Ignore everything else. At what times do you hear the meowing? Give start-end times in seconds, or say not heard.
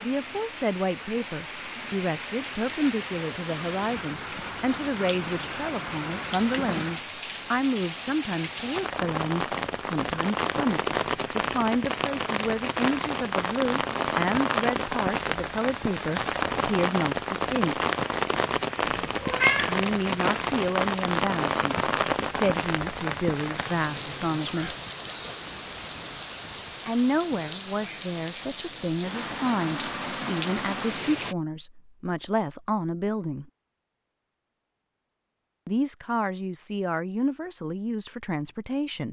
18.9-19.8.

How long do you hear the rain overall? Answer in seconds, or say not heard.
31 s.